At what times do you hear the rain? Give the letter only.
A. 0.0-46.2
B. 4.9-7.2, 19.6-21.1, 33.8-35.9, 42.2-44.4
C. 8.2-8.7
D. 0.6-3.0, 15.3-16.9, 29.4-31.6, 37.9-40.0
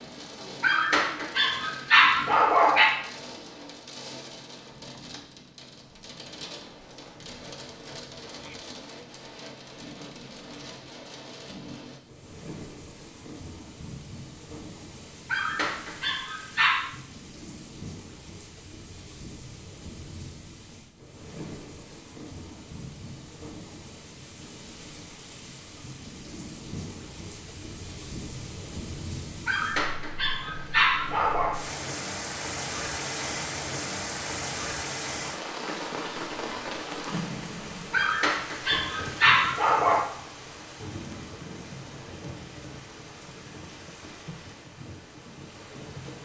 A.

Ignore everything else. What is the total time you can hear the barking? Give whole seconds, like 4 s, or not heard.
8 s.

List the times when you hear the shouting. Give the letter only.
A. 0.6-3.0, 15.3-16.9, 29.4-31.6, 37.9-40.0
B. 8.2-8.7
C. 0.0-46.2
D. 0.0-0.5
B.